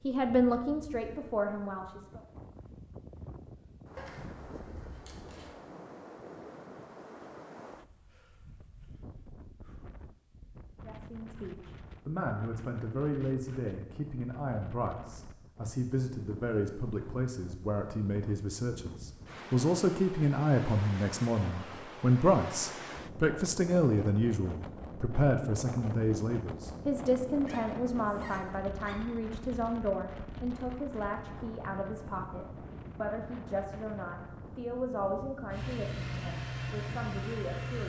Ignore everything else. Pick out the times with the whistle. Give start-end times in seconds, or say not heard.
not heard.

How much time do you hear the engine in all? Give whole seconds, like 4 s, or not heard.
2 s.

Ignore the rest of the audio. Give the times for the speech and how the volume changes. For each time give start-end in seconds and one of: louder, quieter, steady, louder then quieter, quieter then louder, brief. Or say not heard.
0.0-2.2 brief
10.8-37.8 louder then quieter.